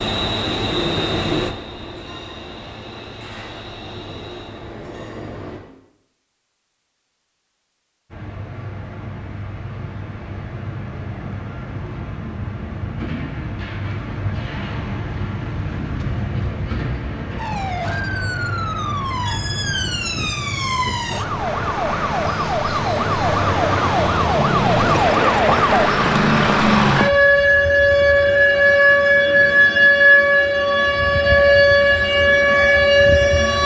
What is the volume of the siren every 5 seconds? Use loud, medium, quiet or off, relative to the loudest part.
off, off, off, quiet, medium, loud, loud.